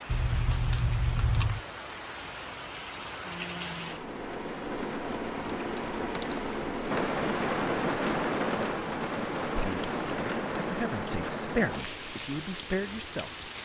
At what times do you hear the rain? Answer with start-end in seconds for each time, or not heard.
0.0-13.6.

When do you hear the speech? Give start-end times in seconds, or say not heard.
9.4-13.3.